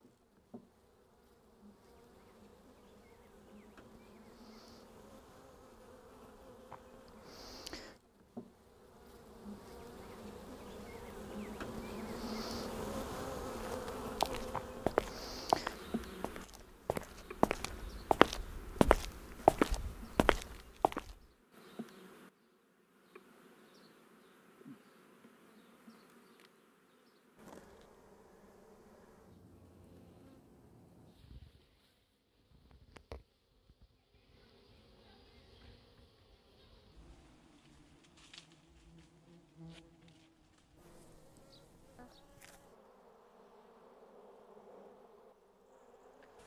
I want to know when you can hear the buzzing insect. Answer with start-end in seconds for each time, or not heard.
0.0-46.4.